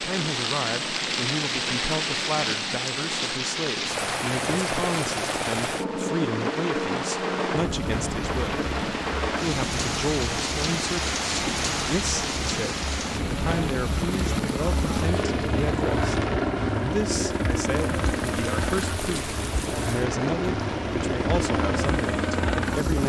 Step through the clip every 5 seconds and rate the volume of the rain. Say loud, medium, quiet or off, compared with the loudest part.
loud, loud, loud, medium, medium.